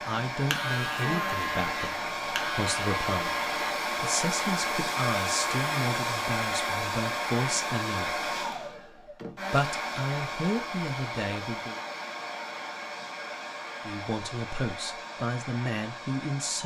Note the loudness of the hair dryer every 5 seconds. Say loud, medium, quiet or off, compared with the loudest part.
loud, loud, medium, medium.